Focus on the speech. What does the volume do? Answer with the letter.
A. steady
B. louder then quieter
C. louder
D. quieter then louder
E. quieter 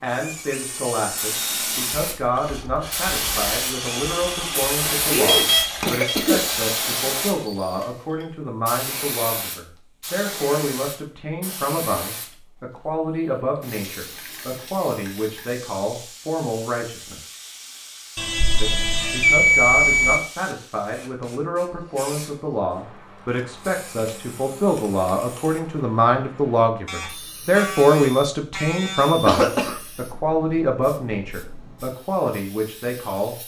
C.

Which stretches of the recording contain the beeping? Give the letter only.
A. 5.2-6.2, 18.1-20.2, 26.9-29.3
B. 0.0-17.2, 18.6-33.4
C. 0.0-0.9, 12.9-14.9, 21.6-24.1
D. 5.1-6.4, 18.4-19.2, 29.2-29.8
A.